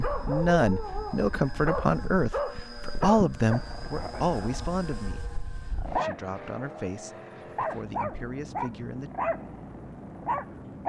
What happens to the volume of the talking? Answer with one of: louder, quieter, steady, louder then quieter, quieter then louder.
quieter.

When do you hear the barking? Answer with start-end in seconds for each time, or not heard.
0.0-6.3, 7.3-10.8.